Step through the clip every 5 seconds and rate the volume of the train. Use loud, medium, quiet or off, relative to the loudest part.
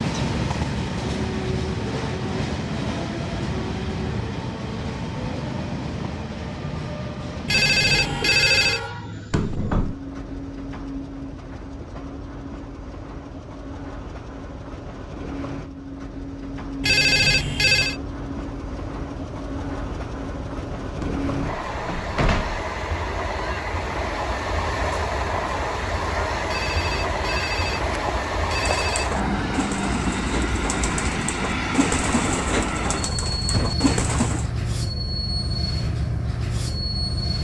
loud, medium, medium, medium, loud, loud, loud, loud.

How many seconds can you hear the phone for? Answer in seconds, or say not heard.
5 s.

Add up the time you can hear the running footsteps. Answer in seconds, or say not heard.
not heard.